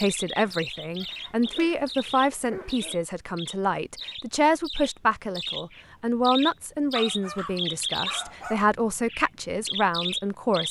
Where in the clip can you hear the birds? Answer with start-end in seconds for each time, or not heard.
0.0-10.6.